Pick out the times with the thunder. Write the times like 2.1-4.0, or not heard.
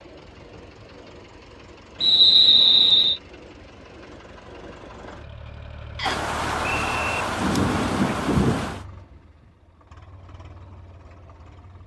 6.0-8.8.